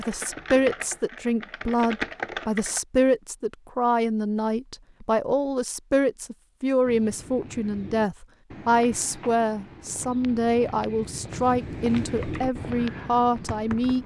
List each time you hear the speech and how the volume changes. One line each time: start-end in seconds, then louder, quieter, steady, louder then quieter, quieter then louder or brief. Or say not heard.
0.0-14.0 steady.